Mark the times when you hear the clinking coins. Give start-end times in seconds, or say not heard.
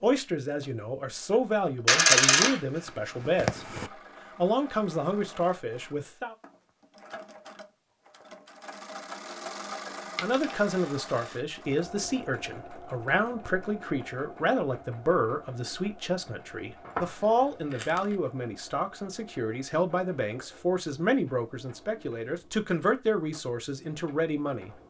1.9-3.9, 10.2-11.4, 16.8-18.1.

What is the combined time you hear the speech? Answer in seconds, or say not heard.
20 s.